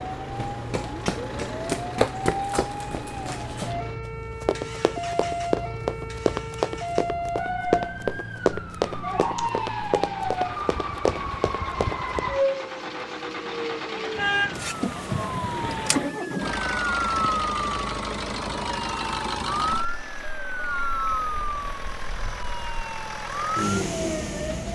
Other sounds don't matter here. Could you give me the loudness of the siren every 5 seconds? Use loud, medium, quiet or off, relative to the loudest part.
medium, loud, loud, loud, loud.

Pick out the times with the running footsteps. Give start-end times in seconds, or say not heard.
0.3-12.2.